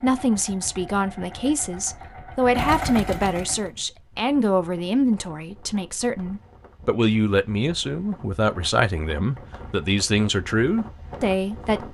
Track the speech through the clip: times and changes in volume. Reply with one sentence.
The speech can be heard from 0.0 to 11.9 s, at a steady volume.